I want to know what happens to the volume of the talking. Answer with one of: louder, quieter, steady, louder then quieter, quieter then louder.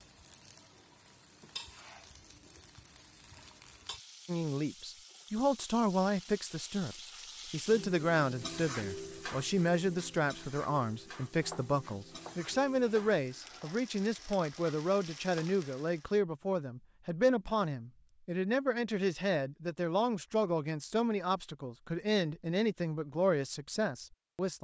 steady.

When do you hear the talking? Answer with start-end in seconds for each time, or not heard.
4.2-24.5.